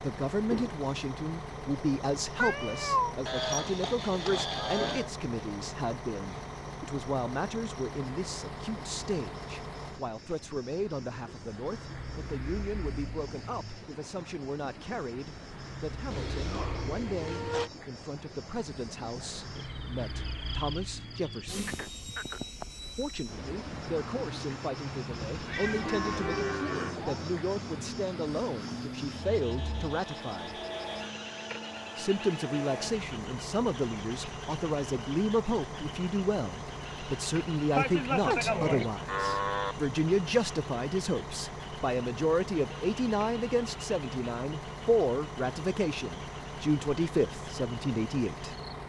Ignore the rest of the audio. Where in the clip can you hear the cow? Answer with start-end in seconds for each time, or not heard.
3.2-5.1, 16.1-17.7, 25.6-27.4, 37.8-39.8.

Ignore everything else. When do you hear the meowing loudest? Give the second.
3 s.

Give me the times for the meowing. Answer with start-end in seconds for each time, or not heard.
2.4-3.1, 25.3-26.6, 38.3-38.9.